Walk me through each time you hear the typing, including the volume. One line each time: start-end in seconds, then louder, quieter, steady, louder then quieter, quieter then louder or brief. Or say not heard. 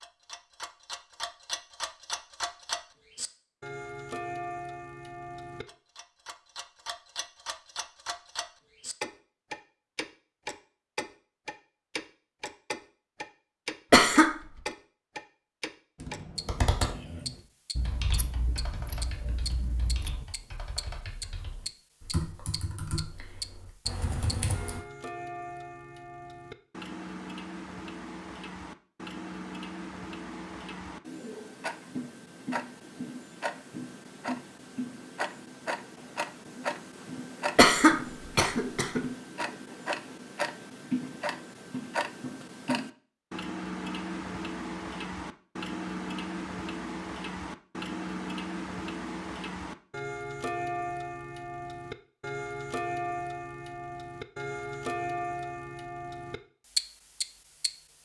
16.0-24.8 quieter then louder.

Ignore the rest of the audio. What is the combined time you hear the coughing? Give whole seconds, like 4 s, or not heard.
2 s.